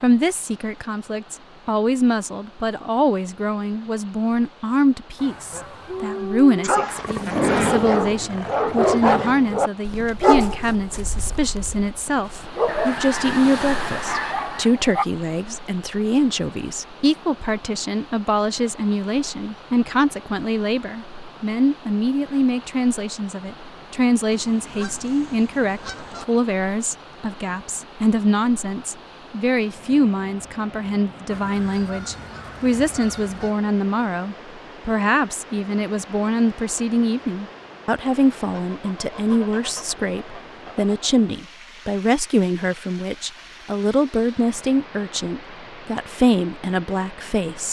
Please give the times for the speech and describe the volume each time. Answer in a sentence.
You can hear the speech from 0.0 to 47.6 s, at a steady volume.